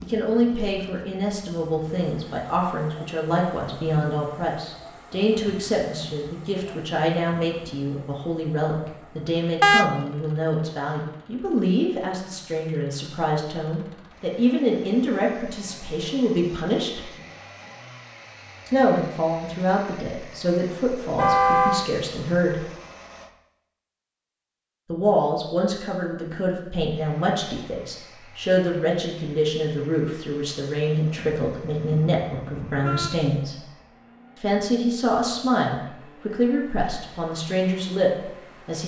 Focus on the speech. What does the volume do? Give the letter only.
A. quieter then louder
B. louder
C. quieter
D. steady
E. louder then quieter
D.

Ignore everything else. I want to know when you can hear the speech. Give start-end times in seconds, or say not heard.
0.0-17.1, 18.6-22.6, 24.9-33.6, 34.4-38.8.